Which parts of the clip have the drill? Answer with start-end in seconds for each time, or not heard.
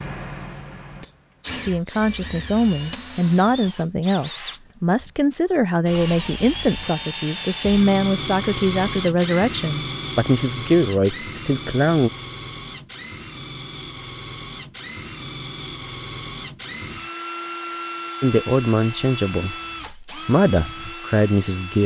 0.0-21.8.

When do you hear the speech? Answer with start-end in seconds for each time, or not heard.
1.6-12.1, 18.2-21.8.